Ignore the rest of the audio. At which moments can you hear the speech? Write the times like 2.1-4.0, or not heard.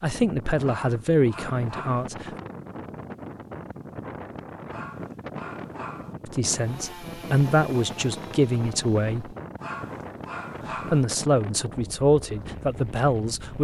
0.0-2.3, 6.2-9.3, 10.9-13.6.